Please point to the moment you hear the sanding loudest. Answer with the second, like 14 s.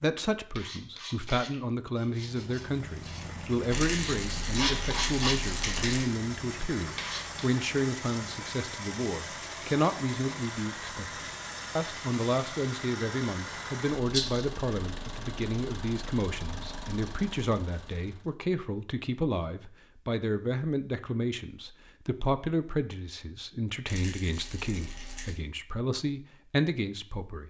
5 s.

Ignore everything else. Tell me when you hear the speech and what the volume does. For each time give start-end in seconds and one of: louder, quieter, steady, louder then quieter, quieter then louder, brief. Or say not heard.
0.0-27.4 steady.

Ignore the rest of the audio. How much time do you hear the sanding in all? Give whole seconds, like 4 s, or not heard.
7 s.